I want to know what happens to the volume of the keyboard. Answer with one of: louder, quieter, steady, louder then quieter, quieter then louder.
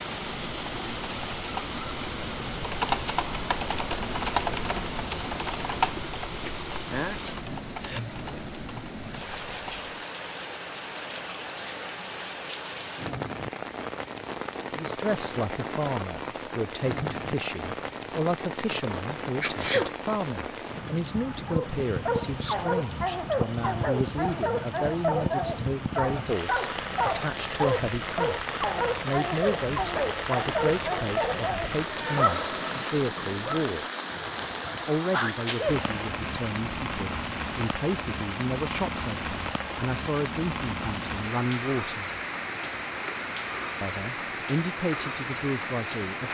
louder then quieter.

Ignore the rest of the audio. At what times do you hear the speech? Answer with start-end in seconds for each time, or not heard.
14.7-33.9, 34.9-42.0, 43.8-46.3.